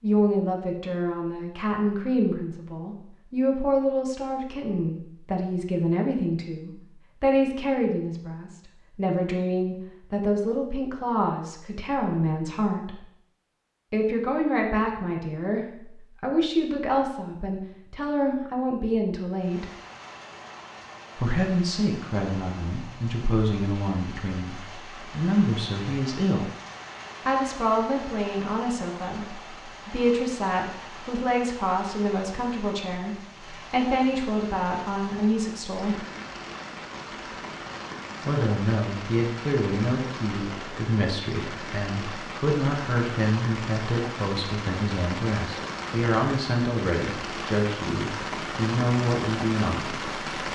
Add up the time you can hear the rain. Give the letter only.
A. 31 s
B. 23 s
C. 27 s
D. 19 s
A.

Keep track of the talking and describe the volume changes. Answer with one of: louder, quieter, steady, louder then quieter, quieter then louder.
steady.